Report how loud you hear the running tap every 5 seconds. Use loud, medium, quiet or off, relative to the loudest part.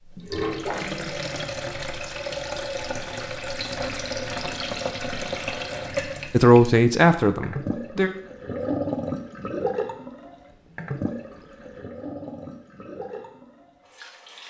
loud, loud, medium.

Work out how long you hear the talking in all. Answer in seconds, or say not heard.
2 s.